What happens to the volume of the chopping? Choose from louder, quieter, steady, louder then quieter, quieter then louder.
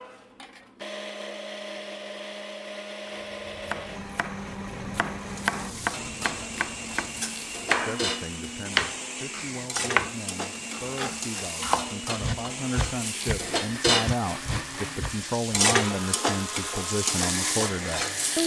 louder then quieter.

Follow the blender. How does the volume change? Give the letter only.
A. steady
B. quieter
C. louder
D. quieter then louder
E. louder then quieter
A.